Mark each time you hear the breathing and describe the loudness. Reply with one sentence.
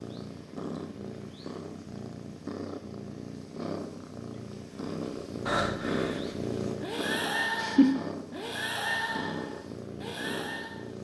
The breathing can be heard from 4.8 to 10.8 s, getting quieter.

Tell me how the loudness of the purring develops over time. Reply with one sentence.
The loudness of the purring goes up, then down.